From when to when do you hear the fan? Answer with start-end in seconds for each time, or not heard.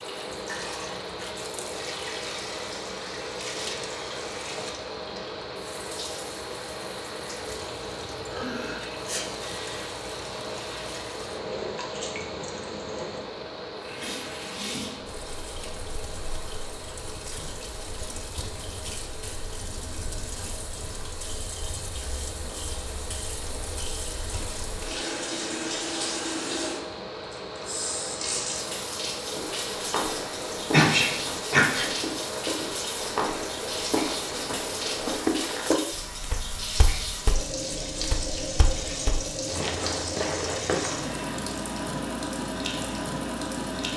0.0-35.2.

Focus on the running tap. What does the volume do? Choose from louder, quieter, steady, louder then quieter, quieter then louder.
louder.